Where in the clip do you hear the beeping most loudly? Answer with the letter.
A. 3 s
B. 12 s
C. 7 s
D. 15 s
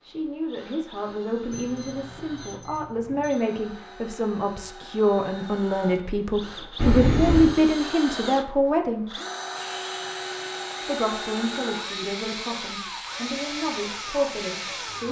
C.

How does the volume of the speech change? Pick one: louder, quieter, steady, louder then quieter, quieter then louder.
louder then quieter.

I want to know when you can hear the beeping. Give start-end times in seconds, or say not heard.
1.5-3.4, 6.8-7.5, 11.4-12.1.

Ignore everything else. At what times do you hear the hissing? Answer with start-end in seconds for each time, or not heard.
9.6-15.0.